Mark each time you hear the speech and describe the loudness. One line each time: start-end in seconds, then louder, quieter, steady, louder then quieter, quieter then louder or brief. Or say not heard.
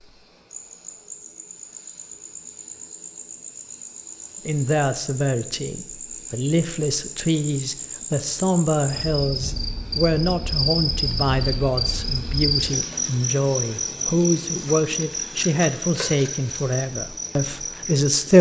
4.5-18.3 steady.